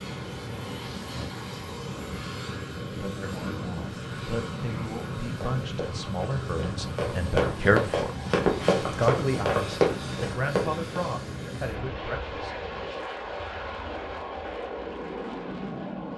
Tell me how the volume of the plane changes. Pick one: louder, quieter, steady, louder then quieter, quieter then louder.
steady.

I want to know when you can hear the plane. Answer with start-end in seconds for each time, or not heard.
0.0-16.1.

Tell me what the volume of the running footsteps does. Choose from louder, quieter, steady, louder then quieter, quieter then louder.
louder.